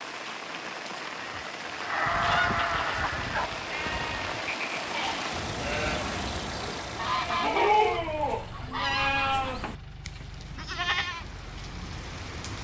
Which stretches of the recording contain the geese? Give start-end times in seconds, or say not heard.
2.0-4.3, 7.0-9.6.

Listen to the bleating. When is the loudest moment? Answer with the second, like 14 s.
8 s.